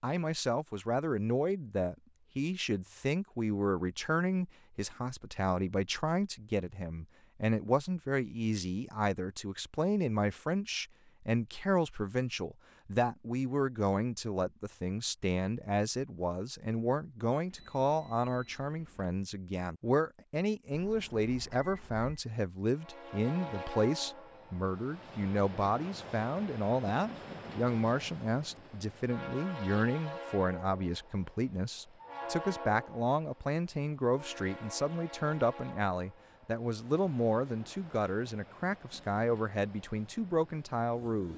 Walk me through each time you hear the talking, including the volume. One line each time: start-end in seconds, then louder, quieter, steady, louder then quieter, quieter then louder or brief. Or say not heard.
0.0-41.3 steady.